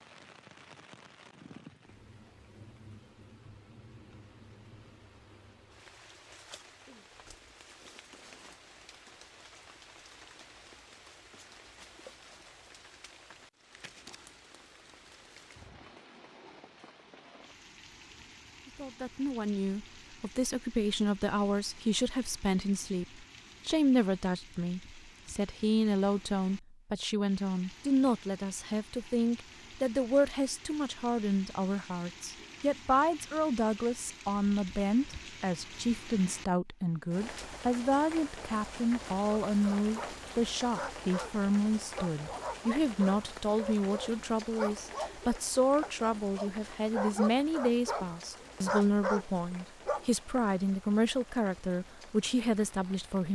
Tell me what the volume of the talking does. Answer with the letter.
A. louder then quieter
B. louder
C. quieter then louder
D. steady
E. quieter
D.